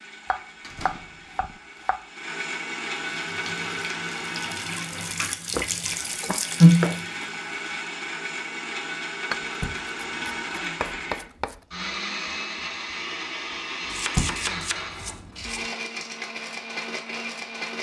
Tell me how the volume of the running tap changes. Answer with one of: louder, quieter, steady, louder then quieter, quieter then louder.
louder.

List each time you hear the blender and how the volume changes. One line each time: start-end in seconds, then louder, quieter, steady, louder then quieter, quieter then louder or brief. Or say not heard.
0.0-17.7 steady.